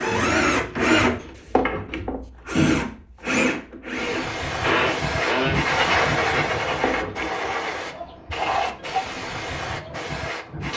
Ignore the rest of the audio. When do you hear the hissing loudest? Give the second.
6 s.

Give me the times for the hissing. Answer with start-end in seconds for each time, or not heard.
3.9-10.7.